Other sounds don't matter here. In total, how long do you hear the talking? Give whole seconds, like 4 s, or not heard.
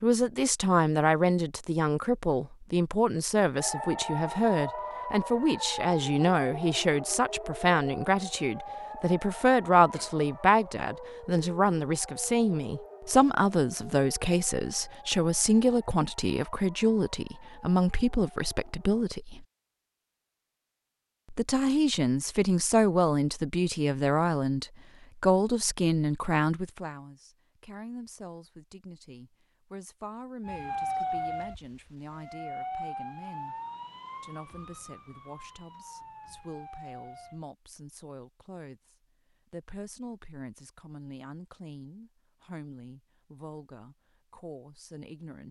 43 s.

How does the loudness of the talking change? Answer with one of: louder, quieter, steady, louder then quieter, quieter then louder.
quieter.